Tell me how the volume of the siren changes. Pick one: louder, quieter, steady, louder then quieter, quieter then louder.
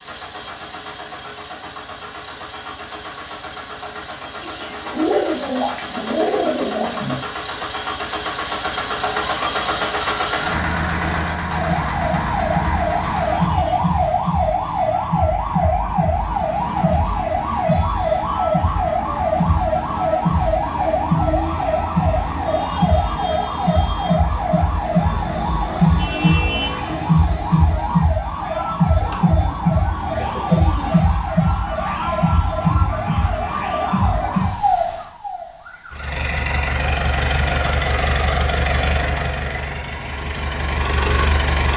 steady.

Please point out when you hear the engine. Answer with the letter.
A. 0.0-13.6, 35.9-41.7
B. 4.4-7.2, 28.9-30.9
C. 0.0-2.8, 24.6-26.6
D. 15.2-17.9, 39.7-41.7
A.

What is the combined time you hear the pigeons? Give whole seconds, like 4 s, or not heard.
5 s.